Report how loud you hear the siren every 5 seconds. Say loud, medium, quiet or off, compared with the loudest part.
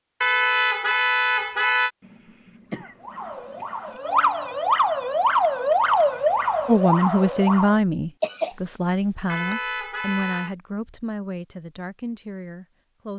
loud, loud, off.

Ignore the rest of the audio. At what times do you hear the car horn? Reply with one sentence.
You can hear the car horn from 0.2 to 1.9 s and from 9.2 to 10.6 s.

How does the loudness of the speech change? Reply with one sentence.
The volume of the speech goes down.